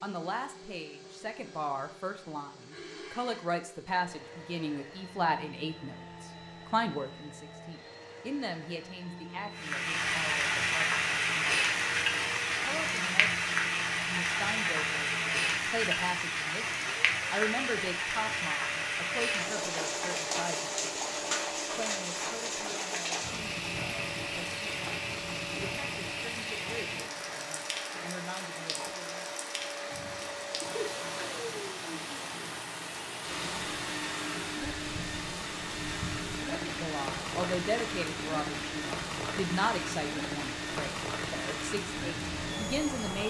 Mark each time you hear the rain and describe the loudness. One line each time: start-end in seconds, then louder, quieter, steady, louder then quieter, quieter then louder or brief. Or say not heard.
9.6-43.2 quieter.